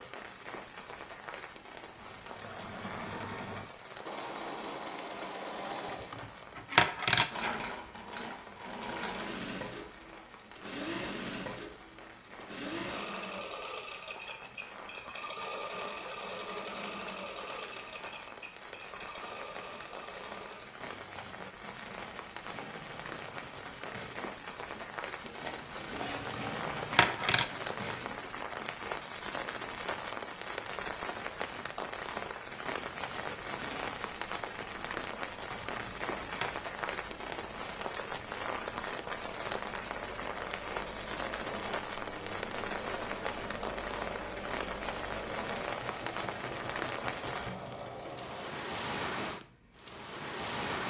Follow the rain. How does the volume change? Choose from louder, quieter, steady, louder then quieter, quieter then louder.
louder.